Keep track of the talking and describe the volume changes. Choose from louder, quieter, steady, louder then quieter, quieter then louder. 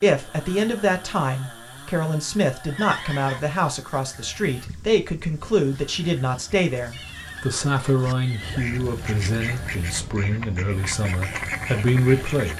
steady.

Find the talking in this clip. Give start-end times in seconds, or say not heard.
0.0-12.5.